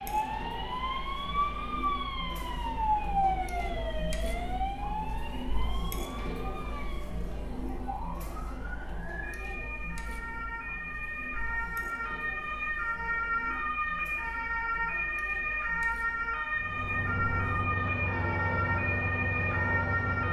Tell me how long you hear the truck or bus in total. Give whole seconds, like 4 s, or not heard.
4 s.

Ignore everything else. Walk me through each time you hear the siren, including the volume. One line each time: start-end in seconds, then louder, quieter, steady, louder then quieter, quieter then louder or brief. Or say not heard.
0.0-20.2 quieter then louder.